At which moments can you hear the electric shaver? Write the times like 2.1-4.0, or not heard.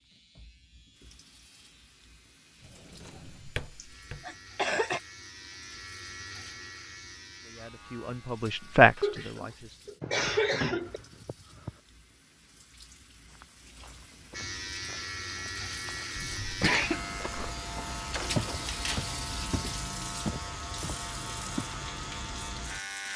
0.0-8.9, 14.3-23.1.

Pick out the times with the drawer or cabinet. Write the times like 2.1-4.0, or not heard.
2.6-4.2, 10.0-11.8, 18.1-19.1.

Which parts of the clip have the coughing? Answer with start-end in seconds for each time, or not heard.
3.8-5.0, 8.9-11.0, 16.1-17.0.